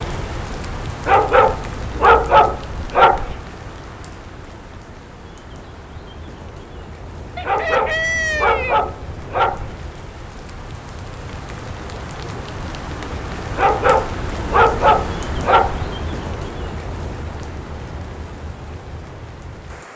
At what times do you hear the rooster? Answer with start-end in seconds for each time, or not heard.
7.3-8.9.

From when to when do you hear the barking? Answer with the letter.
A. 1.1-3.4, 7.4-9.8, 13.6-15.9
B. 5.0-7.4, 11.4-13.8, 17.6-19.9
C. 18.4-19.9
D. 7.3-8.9
A.